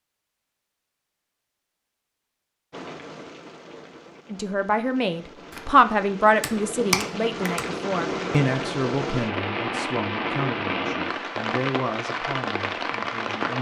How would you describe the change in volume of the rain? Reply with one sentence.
The volume of the rain goes up.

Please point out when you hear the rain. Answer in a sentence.
The rain can be heard from 2.7 to 13.5 s.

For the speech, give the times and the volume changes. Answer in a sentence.
You can hear the speech from 4.3 to 13.5 s, getting quieter.